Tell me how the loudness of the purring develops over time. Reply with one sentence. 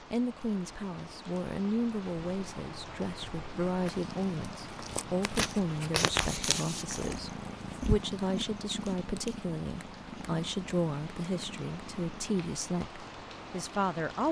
The volume of the purring goes up, then down.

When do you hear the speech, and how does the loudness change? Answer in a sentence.
You can hear the speech from 0.1 to 14.2 s, at a steady volume.